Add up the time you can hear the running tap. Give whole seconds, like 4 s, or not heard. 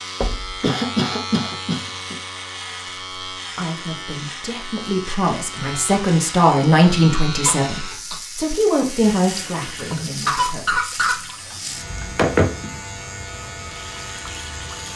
6 s.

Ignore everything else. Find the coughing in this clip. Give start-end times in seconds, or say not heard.
0.6-2.1, 7.5-8.2, 10.2-11.2.